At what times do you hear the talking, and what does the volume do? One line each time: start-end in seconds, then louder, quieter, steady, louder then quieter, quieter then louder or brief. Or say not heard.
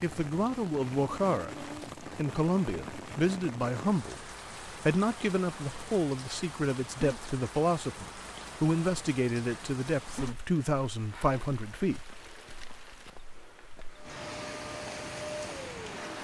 0.0-12.1 steady.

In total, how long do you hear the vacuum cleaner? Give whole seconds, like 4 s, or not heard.
2 s.